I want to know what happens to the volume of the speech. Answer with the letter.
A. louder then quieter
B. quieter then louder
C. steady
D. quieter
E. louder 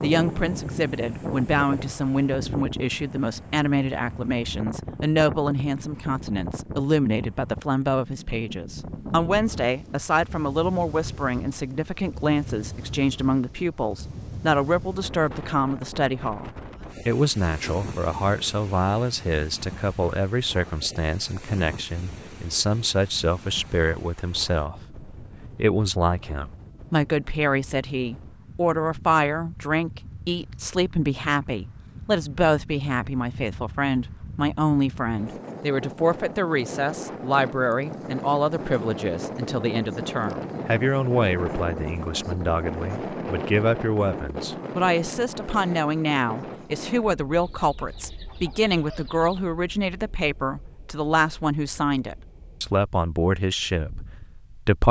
C.